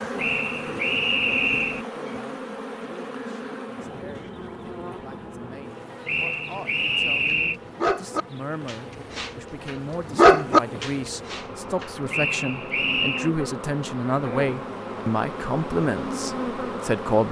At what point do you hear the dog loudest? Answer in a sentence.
The volume of the dog peaks at 10 seconds.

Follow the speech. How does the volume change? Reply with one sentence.
The loudness of the speech goes up.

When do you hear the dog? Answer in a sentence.
The dog can be heard from 7.3 to 11.8 s.